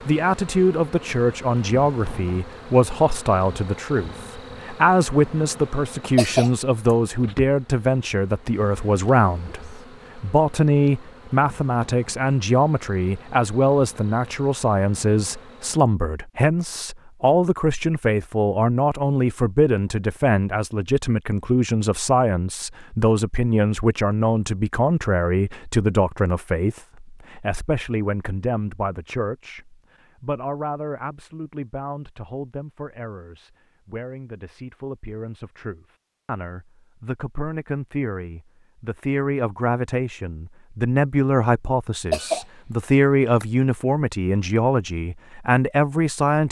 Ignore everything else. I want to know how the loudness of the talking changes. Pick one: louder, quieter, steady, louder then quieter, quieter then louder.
quieter then louder.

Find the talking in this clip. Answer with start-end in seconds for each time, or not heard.
0.1-46.4.